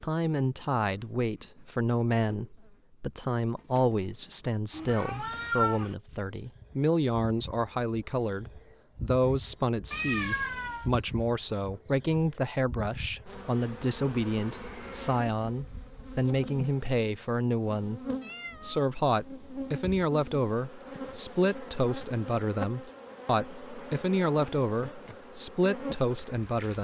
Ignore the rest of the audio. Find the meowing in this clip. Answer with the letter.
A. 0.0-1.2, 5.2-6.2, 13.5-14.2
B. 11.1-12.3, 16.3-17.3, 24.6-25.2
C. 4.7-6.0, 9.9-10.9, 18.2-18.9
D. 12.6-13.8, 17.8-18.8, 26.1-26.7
C.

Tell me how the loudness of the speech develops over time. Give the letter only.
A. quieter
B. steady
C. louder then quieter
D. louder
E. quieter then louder
B.